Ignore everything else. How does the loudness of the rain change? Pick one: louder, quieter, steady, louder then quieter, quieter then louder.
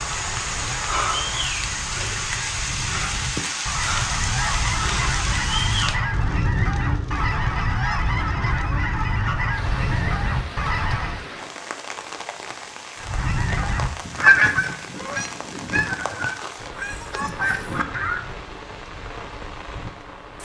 quieter.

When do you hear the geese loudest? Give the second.
14 s.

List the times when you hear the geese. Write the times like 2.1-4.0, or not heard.
0.0-11.2, 13.0-18.2.